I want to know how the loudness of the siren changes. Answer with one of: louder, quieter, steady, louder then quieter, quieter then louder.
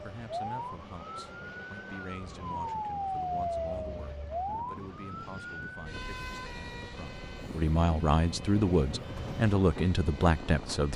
louder then quieter.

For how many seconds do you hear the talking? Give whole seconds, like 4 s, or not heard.
11 s.